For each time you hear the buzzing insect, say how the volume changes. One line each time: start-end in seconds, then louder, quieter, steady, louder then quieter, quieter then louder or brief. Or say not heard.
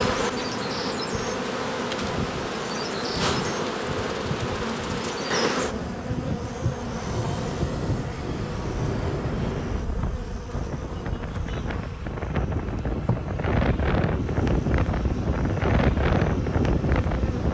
0.0-17.4 quieter.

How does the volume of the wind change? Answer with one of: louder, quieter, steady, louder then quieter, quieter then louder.
louder.